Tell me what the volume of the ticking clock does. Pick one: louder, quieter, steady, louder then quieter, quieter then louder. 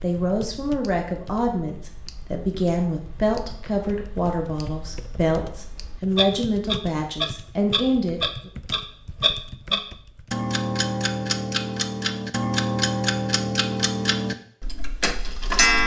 louder.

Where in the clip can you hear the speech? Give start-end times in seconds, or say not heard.
0.0-8.5.